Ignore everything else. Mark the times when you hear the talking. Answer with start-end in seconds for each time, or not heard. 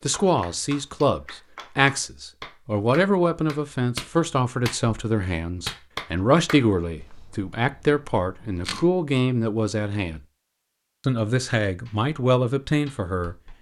0.0-10.2, 11.1-13.3.